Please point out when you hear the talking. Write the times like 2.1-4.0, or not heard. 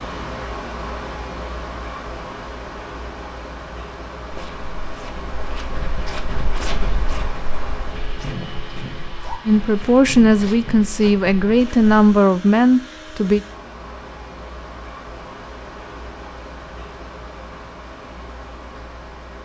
9.4-13.4.